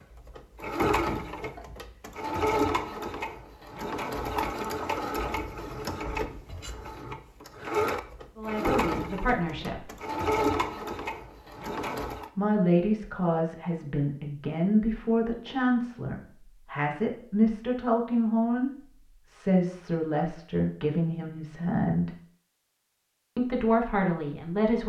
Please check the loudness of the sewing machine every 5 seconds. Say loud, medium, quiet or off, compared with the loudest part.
loud, loud, loud, off, off.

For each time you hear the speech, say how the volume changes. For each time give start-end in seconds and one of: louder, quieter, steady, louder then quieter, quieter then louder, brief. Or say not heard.
8.3-9.8 brief
12.3-22.1 steady
23.4-24.8 brief.